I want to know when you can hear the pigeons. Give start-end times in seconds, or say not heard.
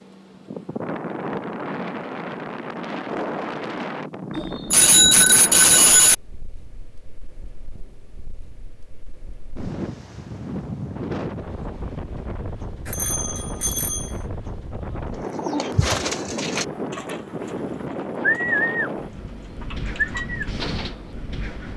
15.2-21.1.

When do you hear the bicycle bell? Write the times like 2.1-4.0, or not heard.
4.3-6.2, 12.8-14.1.